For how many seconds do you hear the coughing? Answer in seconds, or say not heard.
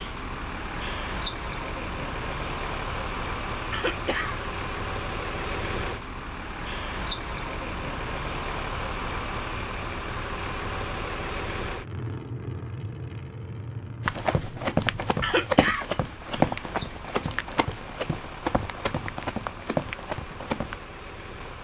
2 s.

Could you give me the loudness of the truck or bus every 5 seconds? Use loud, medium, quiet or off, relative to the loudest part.
loud, loud, loud, medium, medium.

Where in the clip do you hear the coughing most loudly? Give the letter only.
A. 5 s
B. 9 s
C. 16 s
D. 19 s
C.